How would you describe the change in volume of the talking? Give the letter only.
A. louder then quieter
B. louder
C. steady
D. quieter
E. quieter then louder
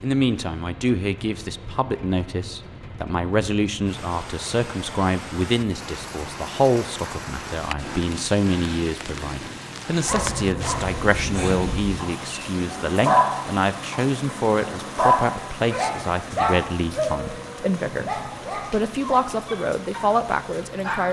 C.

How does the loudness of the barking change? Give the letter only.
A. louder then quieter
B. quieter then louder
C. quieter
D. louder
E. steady
A.